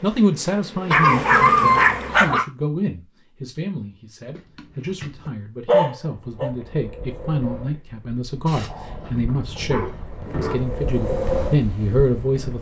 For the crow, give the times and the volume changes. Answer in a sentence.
The crow can't be heard in this clip.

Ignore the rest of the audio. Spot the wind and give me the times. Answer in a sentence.
The wind can be heard from 6.2 to 12.5 s.